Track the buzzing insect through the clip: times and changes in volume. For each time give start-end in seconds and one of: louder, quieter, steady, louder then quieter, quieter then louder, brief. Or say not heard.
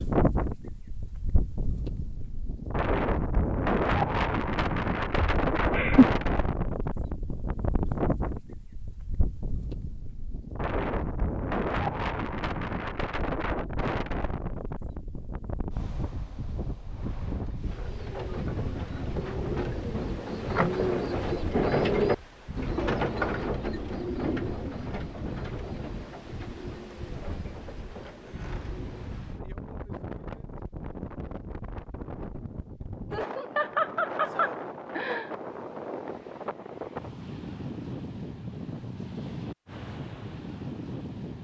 not heard.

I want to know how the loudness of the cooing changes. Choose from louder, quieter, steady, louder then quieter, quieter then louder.
louder then quieter.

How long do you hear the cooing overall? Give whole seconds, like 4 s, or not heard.
12 s.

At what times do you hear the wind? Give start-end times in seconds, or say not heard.
0.0-41.3.